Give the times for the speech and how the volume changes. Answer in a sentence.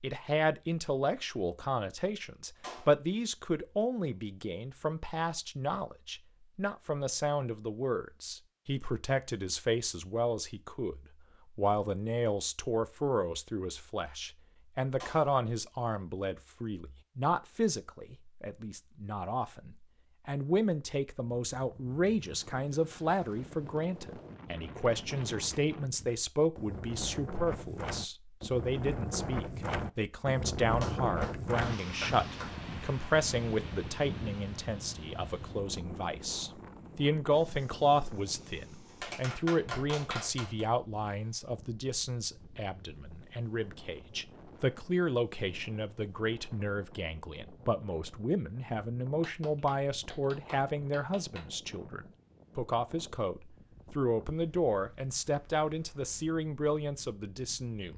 The speech can be heard from 0.0 to 57.9 s, at a steady volume.